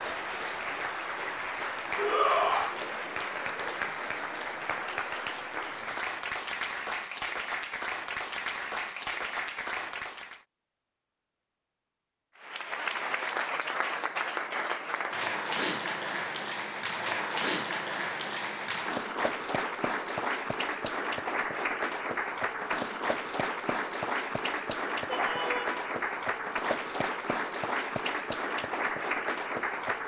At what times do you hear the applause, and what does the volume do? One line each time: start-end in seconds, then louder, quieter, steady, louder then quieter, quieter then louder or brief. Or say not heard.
0.0-10.4 steady
12.3-30.0 steady.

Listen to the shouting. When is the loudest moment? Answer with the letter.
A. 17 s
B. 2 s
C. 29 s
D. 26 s
B.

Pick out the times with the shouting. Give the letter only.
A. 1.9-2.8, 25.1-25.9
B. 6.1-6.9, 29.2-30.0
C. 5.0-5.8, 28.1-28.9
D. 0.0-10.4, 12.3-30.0
A.